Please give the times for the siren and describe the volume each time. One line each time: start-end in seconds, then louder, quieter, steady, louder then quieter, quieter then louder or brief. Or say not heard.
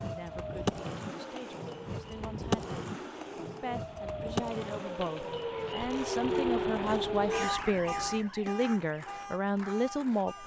0.0-10.4 louder then quieter.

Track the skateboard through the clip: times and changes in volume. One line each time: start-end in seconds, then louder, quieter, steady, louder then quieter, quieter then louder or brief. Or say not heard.
0.0-10.4 quieter.